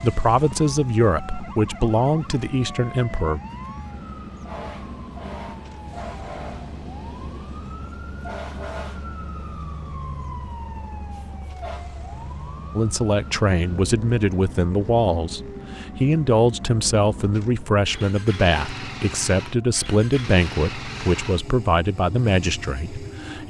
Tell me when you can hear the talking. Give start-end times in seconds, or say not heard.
0.0-3.4, 12.8-23.4.